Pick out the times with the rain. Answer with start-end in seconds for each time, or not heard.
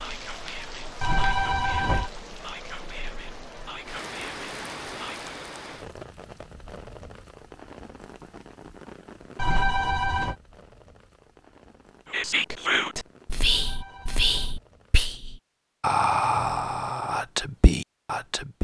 0.0-15.1.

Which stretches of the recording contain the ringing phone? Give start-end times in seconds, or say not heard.
1.0-2.1, 9.3-10.3, 13.4-14.6.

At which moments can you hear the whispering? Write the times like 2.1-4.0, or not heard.
0.0-5.3, 12.1-18.5.